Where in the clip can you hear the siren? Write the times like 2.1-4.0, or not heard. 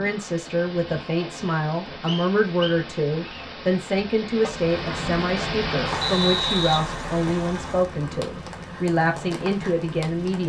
not heard.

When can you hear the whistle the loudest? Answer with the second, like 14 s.
6 s.